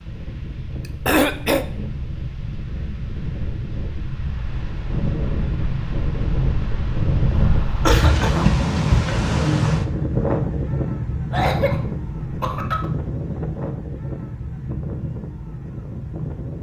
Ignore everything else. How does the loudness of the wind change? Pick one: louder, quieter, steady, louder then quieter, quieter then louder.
louder then quieter.